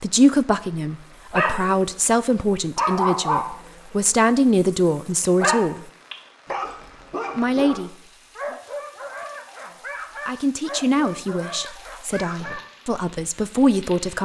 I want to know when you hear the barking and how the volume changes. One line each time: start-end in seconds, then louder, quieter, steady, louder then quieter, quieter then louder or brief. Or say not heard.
1.3-1.9 brief
2.8-12.6 quieter.